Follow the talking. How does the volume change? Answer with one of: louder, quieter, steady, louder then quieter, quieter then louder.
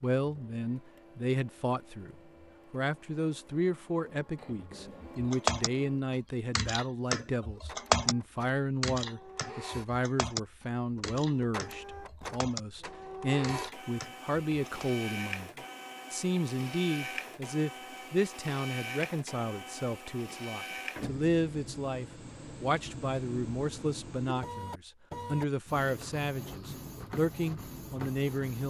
steady.